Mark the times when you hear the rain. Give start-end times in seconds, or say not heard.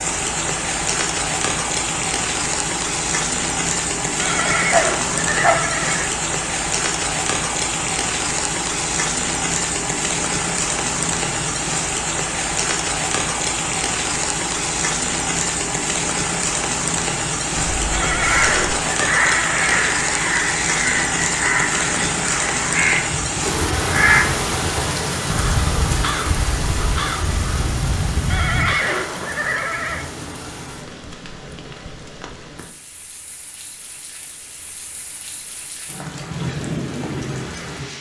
0.0-37.9.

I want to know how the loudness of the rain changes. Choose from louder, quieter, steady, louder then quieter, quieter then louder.
quieter.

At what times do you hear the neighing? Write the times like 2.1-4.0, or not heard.
4.2-6.1, 17.9-19.9, 28.3-30.1.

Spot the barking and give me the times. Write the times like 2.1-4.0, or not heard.
4.5-5.7.